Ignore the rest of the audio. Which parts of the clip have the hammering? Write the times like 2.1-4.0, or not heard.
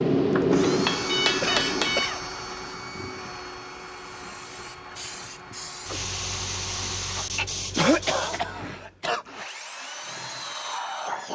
0.0-2.1.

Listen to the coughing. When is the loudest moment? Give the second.
8 s.